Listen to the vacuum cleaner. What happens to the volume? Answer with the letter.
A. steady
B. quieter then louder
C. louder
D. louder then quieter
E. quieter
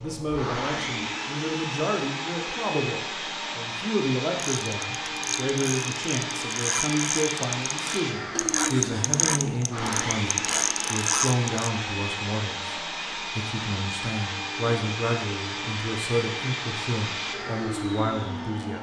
A.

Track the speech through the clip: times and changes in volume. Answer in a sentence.
The speech can be heard from 0.0 to 18.7 s, at a steady volume.